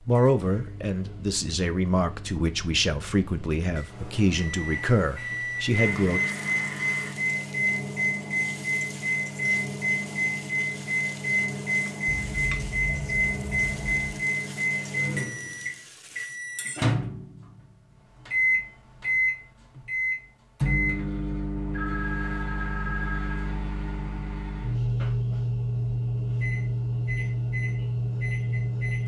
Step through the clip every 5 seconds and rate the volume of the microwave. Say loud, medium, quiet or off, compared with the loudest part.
quiet, loud, loud, loud, loud, loud.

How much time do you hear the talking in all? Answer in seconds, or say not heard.
6 s.